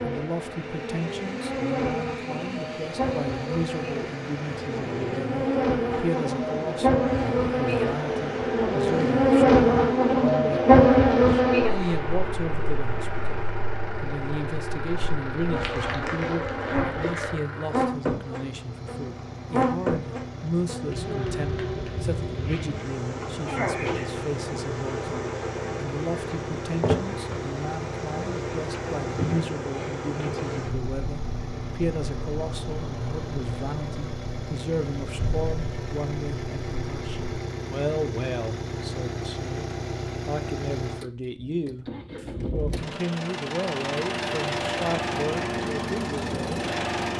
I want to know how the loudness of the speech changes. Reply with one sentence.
The volume of the speech stays about the same.